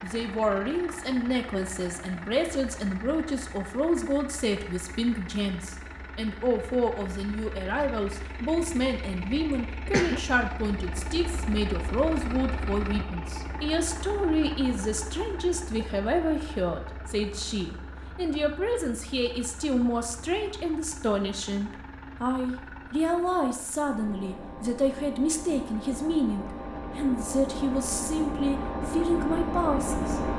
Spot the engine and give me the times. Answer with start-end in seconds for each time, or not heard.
0.0-30.3.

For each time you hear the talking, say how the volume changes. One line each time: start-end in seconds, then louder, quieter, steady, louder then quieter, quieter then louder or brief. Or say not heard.
0.0-30.3 steady.